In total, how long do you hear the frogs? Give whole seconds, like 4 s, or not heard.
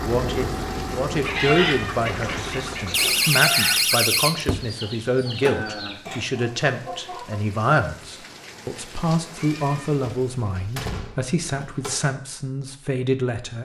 not heard.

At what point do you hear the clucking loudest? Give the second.
2 s.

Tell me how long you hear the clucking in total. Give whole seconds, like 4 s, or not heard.
6 s.